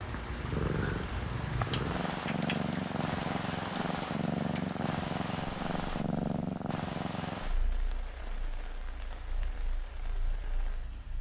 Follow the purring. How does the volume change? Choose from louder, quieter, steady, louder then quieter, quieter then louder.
quieter.